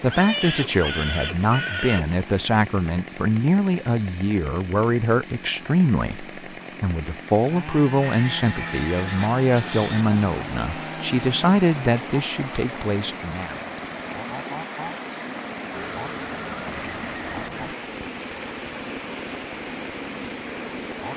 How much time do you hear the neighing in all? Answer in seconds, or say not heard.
6 s.